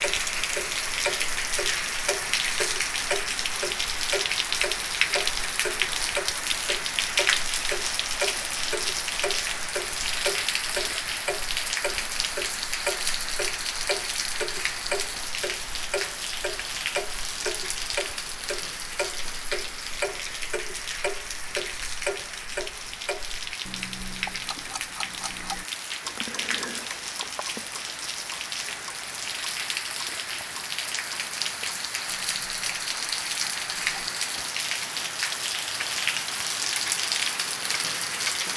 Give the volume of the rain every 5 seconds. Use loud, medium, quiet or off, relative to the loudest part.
loud, loud, loud, medium, medium, medium, loud, loud.